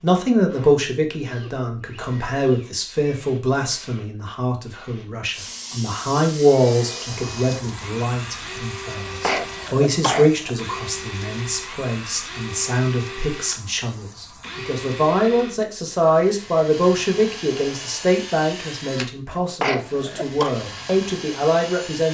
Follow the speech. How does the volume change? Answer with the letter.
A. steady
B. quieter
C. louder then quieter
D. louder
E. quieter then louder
A.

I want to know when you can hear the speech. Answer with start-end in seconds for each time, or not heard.
0.0-22.0.